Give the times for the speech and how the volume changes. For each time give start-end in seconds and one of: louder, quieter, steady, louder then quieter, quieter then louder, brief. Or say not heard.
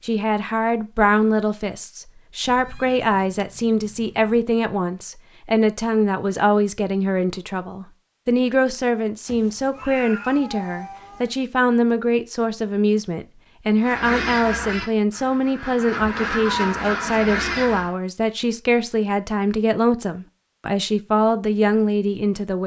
0.0-22.6 steady.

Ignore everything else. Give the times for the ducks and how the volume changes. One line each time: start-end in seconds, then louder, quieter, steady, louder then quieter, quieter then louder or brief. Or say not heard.
13.8-17.9 quieter then louder.